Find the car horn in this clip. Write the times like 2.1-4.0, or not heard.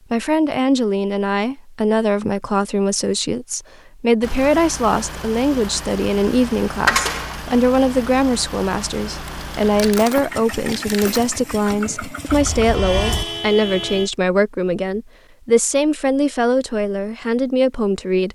12.2-14.1.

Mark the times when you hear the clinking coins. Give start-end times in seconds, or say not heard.
6.8-7.4, 9.2-11.2.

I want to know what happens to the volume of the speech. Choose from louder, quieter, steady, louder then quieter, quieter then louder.
steady.